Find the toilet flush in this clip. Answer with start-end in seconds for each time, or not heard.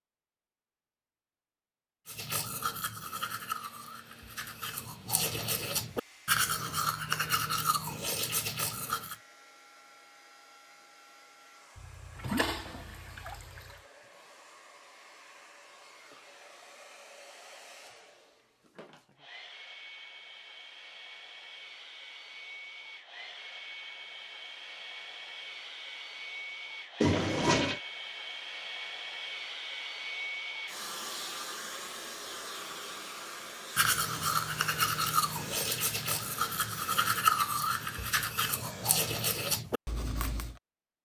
11.8-13.8, 27.0-27.8.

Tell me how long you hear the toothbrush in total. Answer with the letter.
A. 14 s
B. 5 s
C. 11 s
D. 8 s
A.